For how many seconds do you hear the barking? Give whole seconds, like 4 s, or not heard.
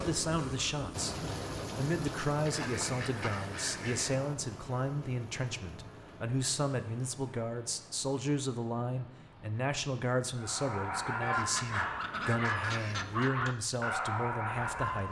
5 s.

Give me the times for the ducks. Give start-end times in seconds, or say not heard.
2.5-4.2, 11.2-13.3.